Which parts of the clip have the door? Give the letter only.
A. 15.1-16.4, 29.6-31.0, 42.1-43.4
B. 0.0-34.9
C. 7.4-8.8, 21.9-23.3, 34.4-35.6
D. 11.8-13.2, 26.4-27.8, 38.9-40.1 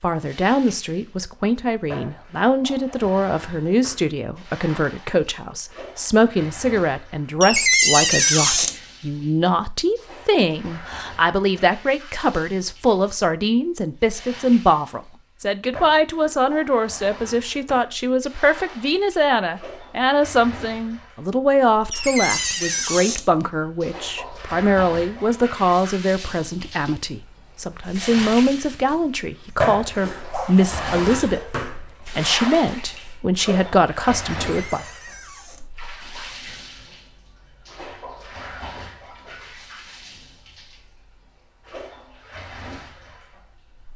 C.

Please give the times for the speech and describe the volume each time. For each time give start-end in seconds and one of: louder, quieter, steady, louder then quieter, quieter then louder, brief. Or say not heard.
0.0-34.9 steady.